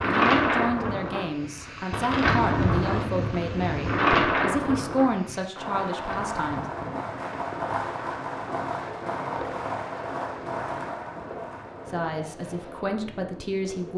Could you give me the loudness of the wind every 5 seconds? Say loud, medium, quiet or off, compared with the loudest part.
loud, quiet, quiet.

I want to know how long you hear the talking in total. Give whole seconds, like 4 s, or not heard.
9 s.